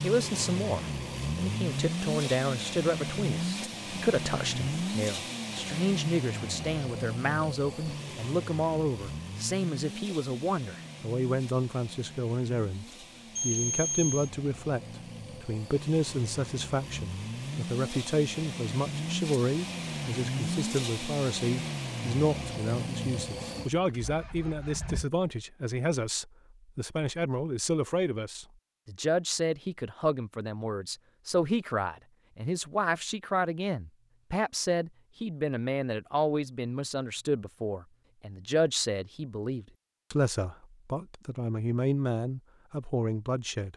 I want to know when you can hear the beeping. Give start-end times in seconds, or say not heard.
13.3-14.3.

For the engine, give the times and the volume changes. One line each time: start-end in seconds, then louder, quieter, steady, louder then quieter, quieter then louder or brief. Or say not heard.
0.0-25.1 quieter then louder.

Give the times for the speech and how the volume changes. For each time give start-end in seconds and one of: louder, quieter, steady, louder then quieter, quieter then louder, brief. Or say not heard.
0.0-43.7 steady.